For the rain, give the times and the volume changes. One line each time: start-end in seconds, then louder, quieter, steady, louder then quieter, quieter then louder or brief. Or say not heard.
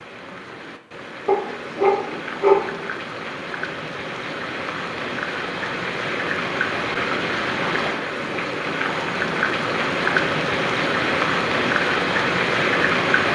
0.0-13.3 louder.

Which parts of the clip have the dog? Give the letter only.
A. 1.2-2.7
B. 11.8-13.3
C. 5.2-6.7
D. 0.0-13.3
A.